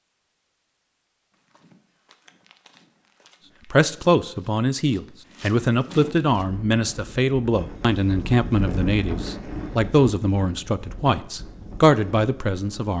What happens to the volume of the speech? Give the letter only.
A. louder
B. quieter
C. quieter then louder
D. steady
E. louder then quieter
D.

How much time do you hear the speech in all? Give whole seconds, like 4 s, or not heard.
9 s.